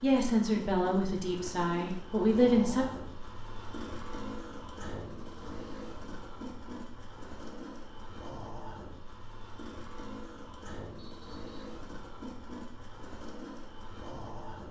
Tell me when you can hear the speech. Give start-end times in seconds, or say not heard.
0.0-2.9.